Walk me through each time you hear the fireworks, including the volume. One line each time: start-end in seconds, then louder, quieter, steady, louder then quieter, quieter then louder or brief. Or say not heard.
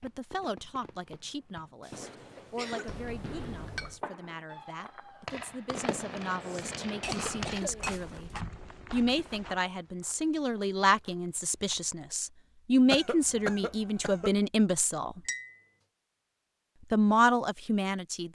0.0-7.7 louder.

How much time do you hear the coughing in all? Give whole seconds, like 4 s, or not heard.
4 s.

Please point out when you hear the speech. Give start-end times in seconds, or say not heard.
0.0-8.3, 8.9-15.2, 16.9-18.3.